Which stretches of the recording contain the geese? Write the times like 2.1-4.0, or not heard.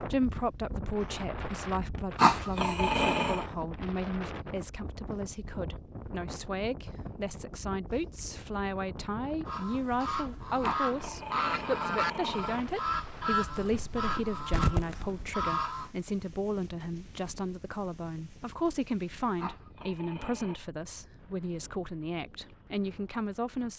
9.4-15.9.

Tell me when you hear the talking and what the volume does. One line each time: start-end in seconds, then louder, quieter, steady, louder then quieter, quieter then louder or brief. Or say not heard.
0.0-23.7 steady.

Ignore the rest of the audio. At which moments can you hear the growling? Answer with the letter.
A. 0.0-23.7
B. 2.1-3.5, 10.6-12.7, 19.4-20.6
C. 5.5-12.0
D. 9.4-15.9
B.